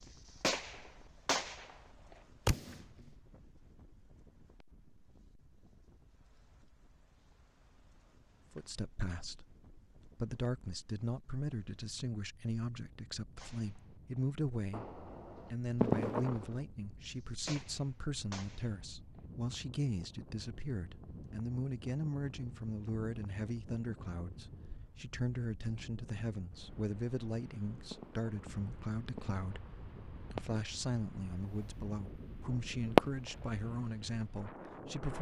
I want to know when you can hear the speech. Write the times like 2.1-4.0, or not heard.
8.6-14.9, 15.5-35.1.